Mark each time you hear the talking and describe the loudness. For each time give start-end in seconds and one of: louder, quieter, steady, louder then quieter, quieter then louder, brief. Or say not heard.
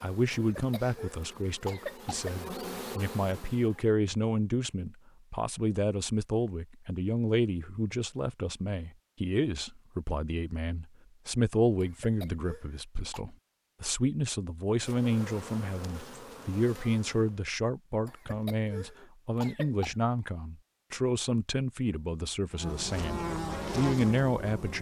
0.0-24.7 steady.